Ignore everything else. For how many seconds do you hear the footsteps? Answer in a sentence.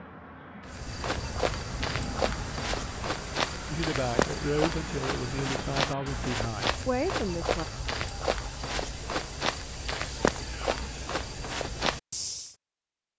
The footsteps can be heard for 12 seconds in total.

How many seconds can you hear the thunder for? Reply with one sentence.
You can hear the thunder for 2 seconds altogether.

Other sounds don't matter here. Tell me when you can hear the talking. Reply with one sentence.
The talking can be heard from 3.7 to 7.7 s.